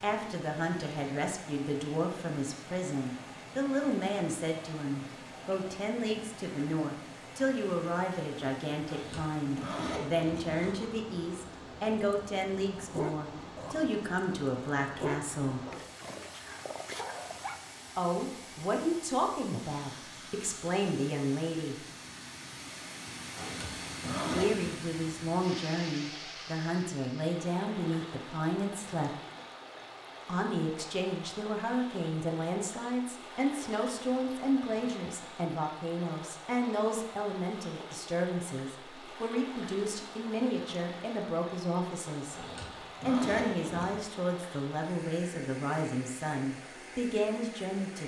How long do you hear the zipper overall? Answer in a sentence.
The zipper can be heard for 5 seconds in total.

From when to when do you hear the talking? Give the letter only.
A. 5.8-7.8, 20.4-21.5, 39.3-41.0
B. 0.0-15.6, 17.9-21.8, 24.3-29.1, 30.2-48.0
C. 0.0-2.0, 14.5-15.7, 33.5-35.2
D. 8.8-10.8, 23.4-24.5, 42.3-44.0
B.